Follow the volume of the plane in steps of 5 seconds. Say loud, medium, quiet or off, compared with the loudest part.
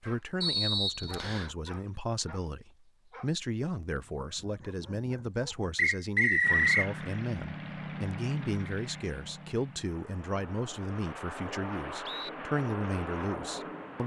off, loud, loud.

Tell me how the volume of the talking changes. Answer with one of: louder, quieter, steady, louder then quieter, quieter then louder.
steady.